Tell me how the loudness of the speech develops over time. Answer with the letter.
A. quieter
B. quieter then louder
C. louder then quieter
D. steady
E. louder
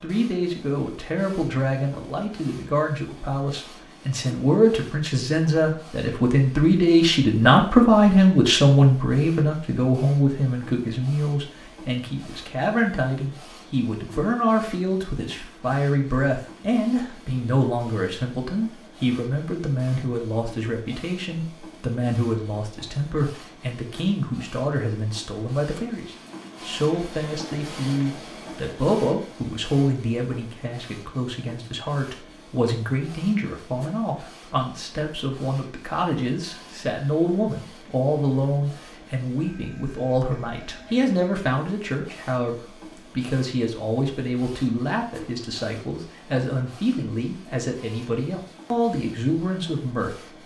A.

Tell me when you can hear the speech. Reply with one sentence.
You can hear the speech from 0.0 to 50.1 s.